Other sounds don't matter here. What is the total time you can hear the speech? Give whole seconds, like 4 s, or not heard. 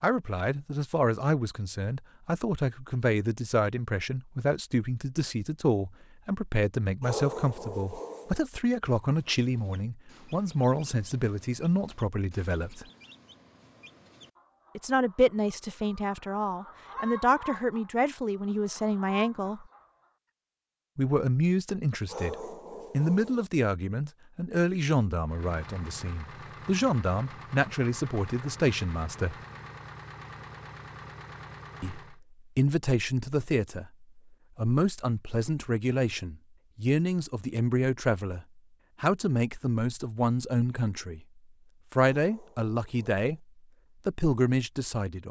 38 s.